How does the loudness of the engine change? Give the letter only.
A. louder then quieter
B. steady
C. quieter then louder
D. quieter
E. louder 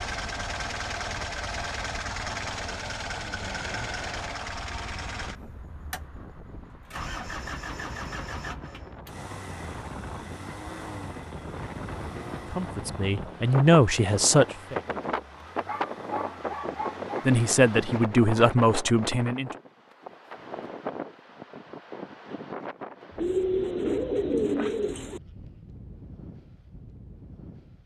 D.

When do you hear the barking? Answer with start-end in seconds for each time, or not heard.
15.4-17.1.